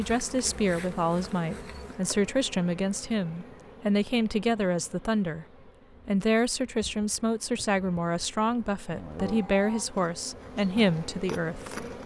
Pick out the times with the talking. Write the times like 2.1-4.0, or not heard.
0.0-5.5, 6.0-11.8.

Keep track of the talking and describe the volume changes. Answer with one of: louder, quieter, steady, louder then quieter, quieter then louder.
steady.